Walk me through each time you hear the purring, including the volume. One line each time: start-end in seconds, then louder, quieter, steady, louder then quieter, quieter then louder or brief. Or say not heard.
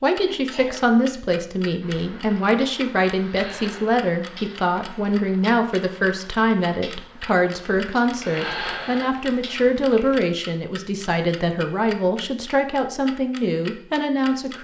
not heard.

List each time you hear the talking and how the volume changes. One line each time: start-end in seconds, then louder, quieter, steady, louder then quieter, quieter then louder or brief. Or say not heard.
0.0-14.5 steady.